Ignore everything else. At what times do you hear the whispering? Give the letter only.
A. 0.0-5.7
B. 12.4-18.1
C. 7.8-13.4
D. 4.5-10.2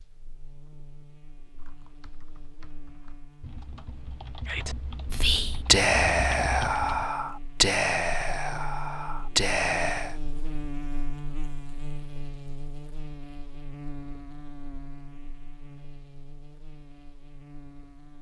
D.